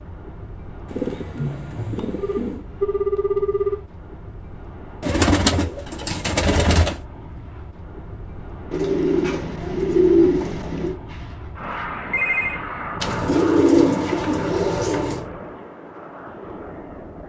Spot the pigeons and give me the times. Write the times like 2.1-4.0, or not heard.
0.8-2.6, 5.0-7.0, 8.7-11.0, 13.0-15.2.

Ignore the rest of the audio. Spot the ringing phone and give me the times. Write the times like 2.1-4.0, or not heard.
2.1-3.8, 11.1-12.6.